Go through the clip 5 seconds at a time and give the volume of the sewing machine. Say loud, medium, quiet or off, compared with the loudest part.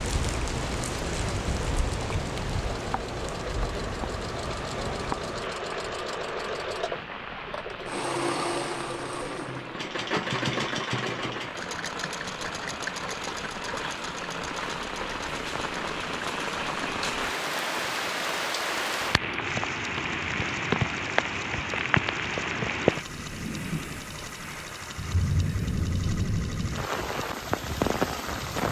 medium, loud, loud, medium, medium, medium.